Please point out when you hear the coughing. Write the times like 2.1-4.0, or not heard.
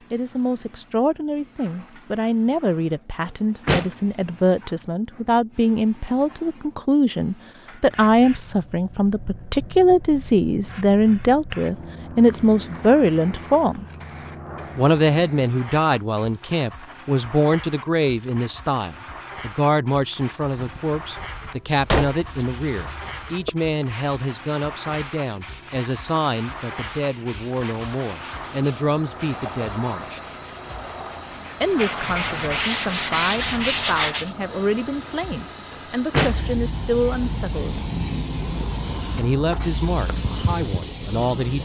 not heard.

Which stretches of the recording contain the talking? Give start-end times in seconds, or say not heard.
0.1-13.8, 14.8-30.2, 31.6-37.8, 39.1-41.6.